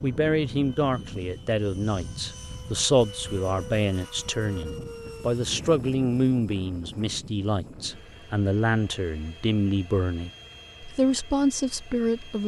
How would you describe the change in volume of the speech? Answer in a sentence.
The loudness of the speech stays about the same.